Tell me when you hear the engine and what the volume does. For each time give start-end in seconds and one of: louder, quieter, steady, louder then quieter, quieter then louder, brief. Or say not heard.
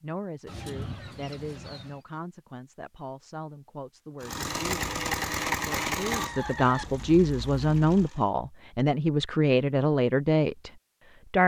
4.2-8.3 quieter.